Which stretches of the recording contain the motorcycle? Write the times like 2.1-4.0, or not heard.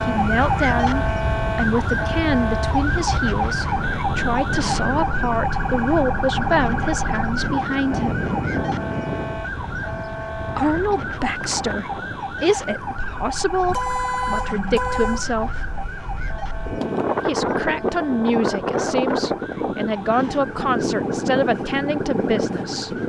not heard.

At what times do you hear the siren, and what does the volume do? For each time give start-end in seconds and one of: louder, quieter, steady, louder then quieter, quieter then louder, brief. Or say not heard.
0.0-23.0 quieter.